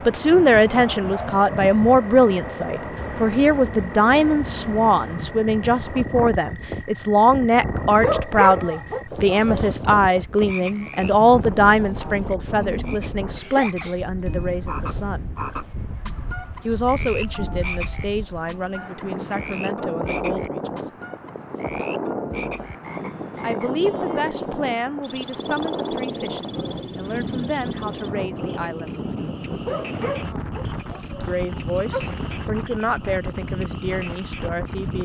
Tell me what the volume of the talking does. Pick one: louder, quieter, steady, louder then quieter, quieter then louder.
quieter.